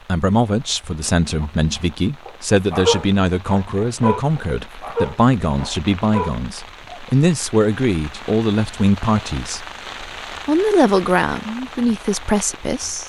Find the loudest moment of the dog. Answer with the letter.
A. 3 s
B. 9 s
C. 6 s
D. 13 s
A.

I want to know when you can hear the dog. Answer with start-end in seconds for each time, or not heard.
1.4-7.0.